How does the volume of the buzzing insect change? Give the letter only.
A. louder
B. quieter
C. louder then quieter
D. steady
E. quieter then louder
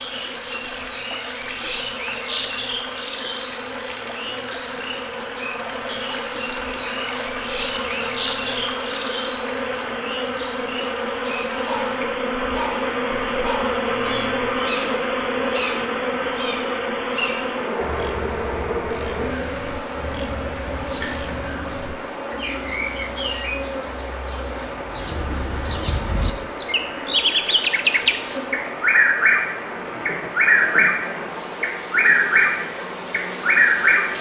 C.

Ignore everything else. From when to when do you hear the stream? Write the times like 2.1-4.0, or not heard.
0.0-34.1.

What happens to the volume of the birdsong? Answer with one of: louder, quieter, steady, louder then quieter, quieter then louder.
louder.